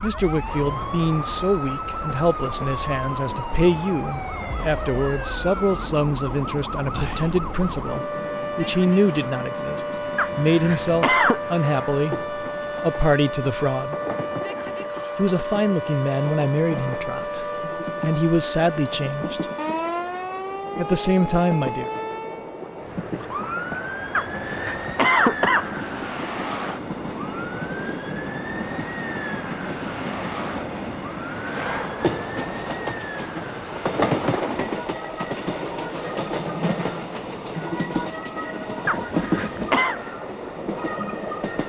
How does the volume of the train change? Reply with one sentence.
The loudness of the train goes up.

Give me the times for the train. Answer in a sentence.
You can hear the train from 0.1 to 41.6 s.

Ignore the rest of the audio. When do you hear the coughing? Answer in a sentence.
You can hear the coughing from 10.2 to 11.4 s, from 24.1 to 25.7 s and from 38.9 to 40.0 s.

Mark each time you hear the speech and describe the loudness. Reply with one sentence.
The speech can be heard from 0.0 to 13.9 s, at a steady volume; from 15.2 to 19.4 s, getting quieter then louder; and briefly from 20.8 to 21.9 s.